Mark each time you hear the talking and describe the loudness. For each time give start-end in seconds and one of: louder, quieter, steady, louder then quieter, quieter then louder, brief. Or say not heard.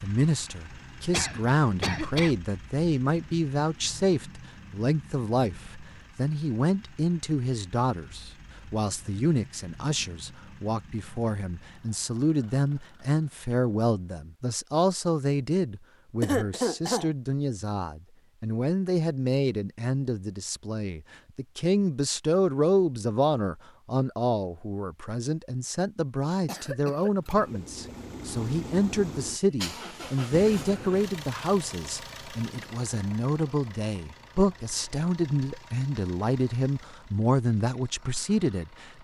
0.0-38.9 steady.